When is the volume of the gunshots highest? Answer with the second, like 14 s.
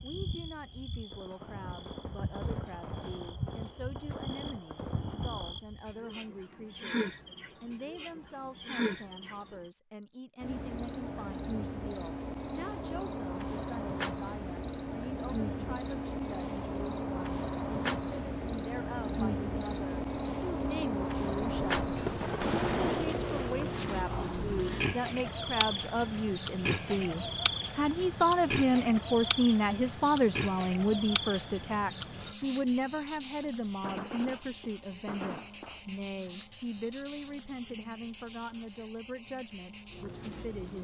23 s.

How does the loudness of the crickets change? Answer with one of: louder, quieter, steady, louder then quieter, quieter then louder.
louder then quieter.